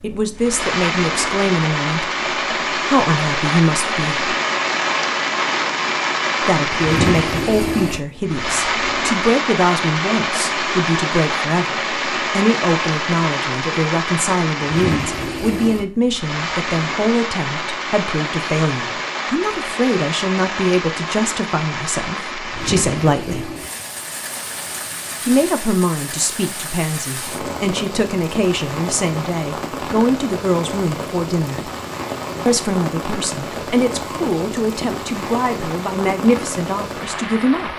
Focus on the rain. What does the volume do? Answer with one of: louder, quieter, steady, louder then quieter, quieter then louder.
quieter.